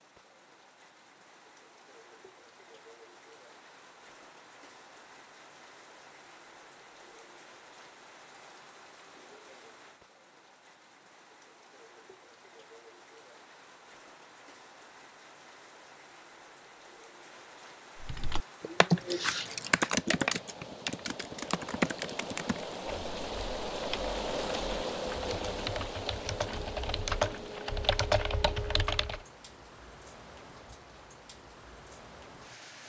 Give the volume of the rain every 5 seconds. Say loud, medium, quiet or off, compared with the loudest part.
quiet, quiet, quiet, quiet, loud, loud, quiet.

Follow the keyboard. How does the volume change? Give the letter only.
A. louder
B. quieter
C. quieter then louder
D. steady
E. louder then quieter
C.